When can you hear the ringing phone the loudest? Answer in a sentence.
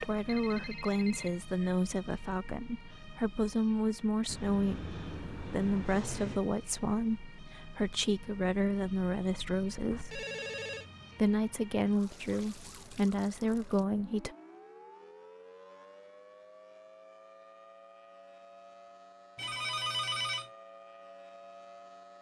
The loudest moment of the ringing phone is at 20 seconds.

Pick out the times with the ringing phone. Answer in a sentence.
You can hear the ringing phone from 0.2 to 1.3 s, from 9.9 to 10.8 s and from 19.4 to 20.5 s.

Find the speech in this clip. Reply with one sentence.
You can hear the speech from 0.0 to 10.2 s and from 11.2 to 14.3 s.